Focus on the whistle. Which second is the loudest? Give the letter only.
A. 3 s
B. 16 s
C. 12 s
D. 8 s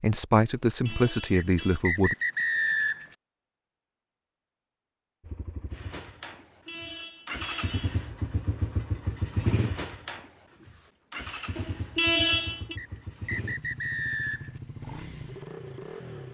A.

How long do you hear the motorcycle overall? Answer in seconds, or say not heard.
11 s.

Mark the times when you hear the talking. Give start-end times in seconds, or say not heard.
0.0-2.1.